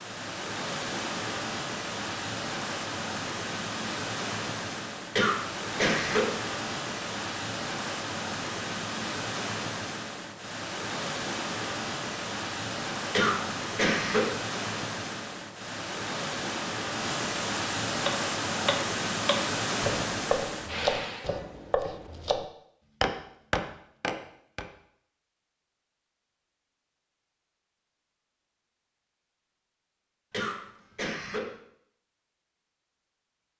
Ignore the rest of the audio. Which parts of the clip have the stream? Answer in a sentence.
The stream can be heard from 0.0 to 21.3 s.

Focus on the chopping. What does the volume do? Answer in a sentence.
The volume of the chopping stays about the same.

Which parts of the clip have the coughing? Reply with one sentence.
The coughing can be heard from 5.2 to 6.3 s, from 13.1 to 14.3 s and from 30.3 to 31.5 s.